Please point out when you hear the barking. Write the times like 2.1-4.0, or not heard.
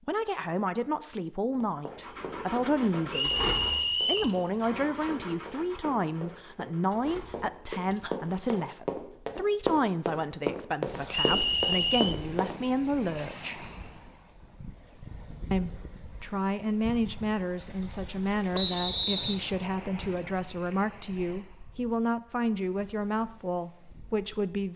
not heard.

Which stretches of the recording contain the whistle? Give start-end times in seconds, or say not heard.
3.1-4.3, 11.1-12.2, 18.5-19.4.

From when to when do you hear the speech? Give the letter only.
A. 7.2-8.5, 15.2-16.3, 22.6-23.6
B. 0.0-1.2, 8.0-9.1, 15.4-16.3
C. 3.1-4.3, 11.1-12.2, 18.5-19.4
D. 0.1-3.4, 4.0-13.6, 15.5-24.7
D.